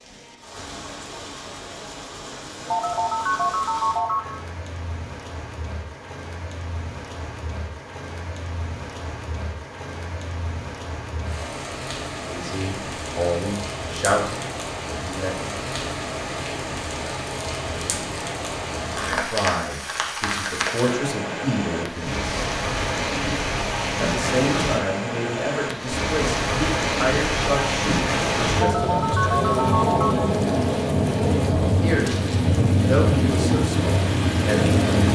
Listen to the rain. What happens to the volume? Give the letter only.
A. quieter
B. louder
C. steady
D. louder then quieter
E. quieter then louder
B.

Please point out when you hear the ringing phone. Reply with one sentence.
The ringing phone can be heard from 2.7 to 4.3 s and from 28.6 to 30.4 s.